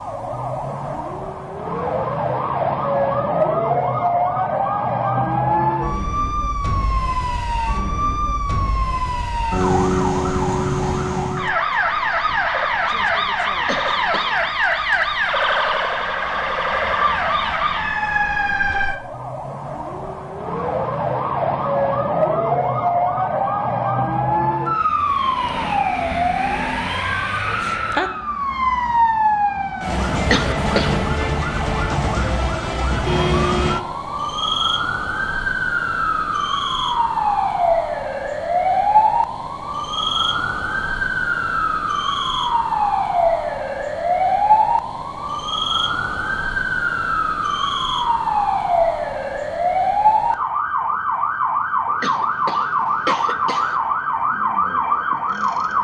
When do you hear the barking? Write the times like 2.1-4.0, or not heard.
not heard.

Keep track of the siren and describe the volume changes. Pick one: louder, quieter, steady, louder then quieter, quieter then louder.
steady.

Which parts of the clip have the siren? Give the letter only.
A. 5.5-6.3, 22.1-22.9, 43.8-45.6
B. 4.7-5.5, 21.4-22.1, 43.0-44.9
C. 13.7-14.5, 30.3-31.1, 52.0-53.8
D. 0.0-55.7
D.